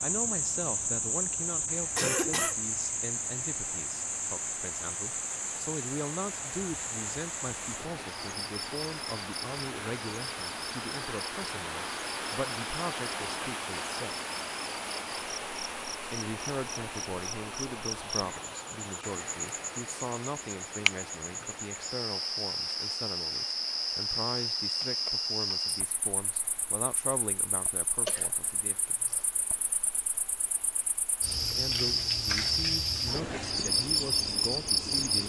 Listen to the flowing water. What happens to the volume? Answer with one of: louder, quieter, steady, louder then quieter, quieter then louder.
louder then quieter.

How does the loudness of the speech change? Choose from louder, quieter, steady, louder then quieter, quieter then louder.
steady.